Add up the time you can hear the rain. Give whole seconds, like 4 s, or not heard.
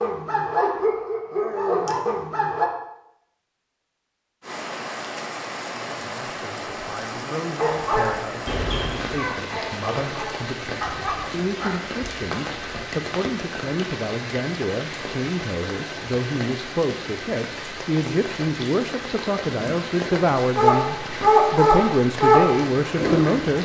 19 s.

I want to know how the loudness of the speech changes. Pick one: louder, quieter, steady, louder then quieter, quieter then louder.
louder.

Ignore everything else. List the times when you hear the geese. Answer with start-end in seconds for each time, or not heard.
not heard.